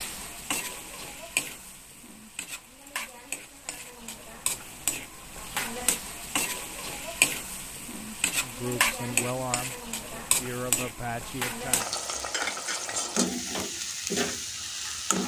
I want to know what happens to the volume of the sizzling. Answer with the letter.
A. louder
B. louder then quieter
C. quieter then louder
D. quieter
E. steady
A.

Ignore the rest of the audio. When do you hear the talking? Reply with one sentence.
The talking can be heard from 8.4 to 11.9 s.